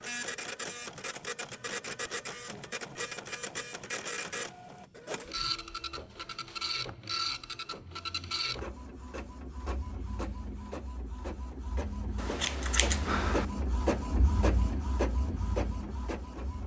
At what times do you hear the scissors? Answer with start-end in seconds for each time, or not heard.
12.2-13.4.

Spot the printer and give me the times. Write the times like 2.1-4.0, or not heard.
0.0-16.6.